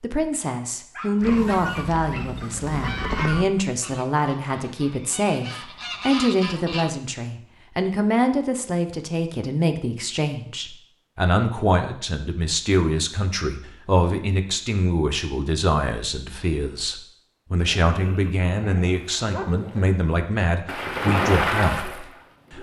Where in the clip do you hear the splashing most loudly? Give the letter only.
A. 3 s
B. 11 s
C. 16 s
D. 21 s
D.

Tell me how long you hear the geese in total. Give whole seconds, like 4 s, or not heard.
6 s.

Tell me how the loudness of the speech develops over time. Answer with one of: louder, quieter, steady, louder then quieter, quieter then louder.
steady.